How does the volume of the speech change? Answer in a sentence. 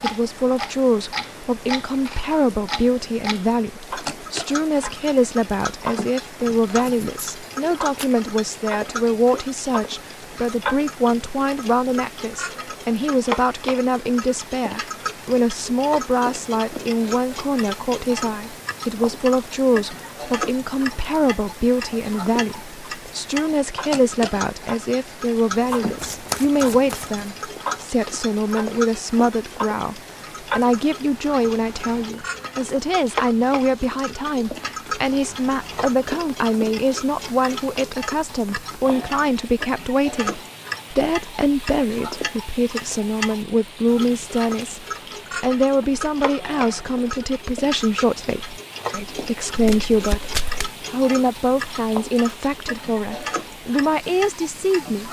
The volume of the speech stays about the same.